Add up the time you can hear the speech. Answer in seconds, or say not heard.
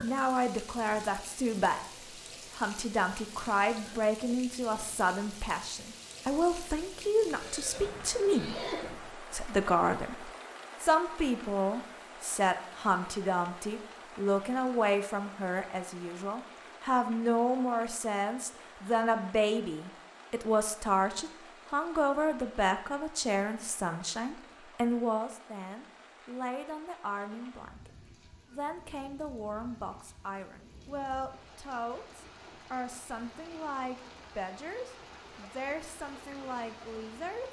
36 s.